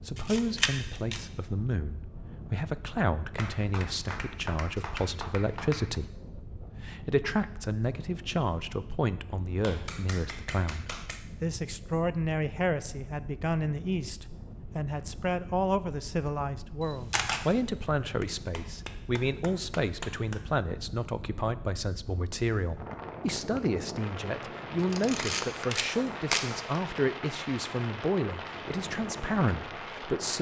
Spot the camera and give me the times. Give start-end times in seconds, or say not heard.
0.1-1.2, 16.8-17.4, 24.8-26.5.